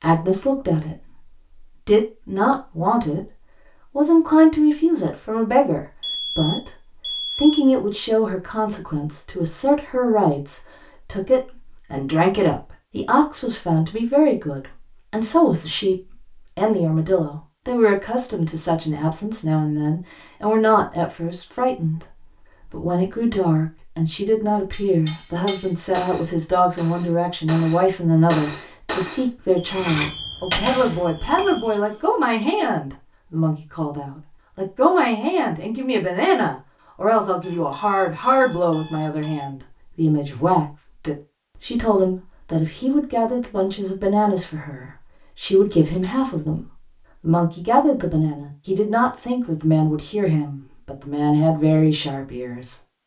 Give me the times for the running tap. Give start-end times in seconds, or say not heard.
not heard.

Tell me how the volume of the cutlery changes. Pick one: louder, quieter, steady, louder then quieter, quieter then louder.
louder.